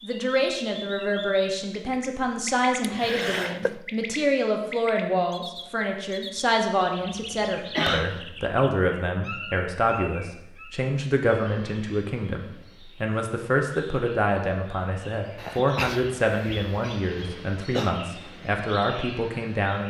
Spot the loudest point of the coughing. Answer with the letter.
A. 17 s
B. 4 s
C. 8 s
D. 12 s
C.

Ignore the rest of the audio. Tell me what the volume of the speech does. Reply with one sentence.
The volume of the speech stays about the same.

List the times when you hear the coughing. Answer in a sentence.
The coughing can be heard from 2.8 to 3.8 s, from 7.7 to 8.2 s and from 15.3 to 17.9 s.